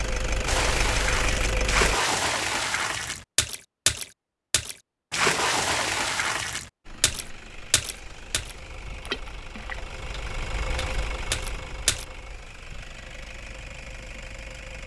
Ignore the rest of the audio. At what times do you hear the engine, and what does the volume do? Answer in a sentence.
You can hear the engine briefly from 0.0 to 1.9 s; and from 6.8 to 14.8 s, getting louder then quieter.